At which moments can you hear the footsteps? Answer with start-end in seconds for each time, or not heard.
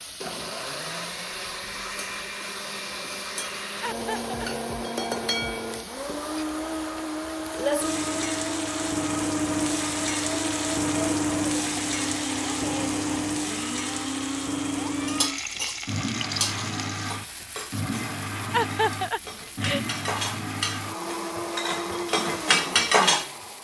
not heard.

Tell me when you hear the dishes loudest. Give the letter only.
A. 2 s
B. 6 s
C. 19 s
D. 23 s
D.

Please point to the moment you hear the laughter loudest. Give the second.
19 s.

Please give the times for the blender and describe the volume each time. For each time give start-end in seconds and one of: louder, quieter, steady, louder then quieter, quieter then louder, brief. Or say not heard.
0.0-23.5 steady.